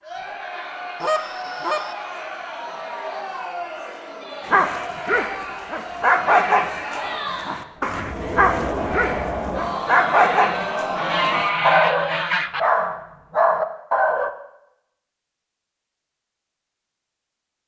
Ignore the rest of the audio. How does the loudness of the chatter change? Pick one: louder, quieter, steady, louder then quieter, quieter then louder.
louder.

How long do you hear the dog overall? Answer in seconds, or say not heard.
10 s.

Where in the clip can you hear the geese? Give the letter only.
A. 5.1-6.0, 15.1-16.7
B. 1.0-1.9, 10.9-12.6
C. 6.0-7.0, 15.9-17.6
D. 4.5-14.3
B.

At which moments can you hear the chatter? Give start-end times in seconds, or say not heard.
0.0-11.6.